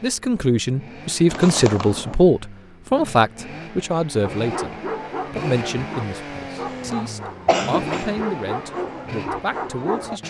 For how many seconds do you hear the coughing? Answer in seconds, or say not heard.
2 s.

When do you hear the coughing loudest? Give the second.
8 s.